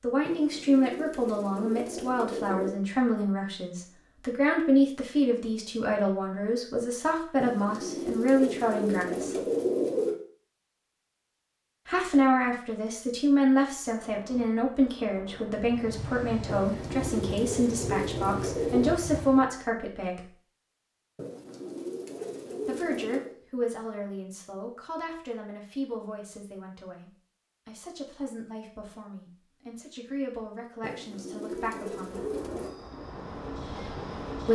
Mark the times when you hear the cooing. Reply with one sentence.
You can hear the cooing from 0.2 to 2.8 s, from 7.4 to 10.2 s, from 16.4 to 18.9 s, from 21.1 to 23.4 s and from 30.8 to 32.8 s.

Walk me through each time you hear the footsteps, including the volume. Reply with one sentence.
You can't hear the footsteps here.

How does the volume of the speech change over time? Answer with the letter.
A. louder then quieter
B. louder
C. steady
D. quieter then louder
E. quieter
E.